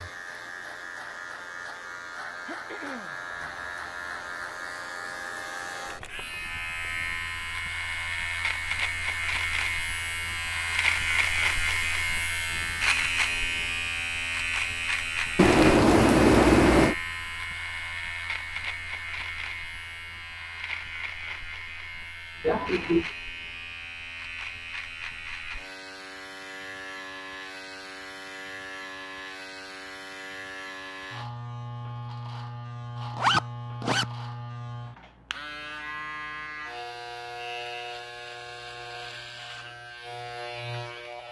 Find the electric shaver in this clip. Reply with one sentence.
The electric shaver can be heard from 0.0 to 41.2 s.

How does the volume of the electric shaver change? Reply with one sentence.
The loudness of the electric shaver goes up, then down.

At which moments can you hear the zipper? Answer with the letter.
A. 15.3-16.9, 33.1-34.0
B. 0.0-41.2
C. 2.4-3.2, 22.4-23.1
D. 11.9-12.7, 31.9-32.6
A.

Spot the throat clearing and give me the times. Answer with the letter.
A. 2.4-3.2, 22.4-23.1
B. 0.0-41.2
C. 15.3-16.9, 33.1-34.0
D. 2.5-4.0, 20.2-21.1
A.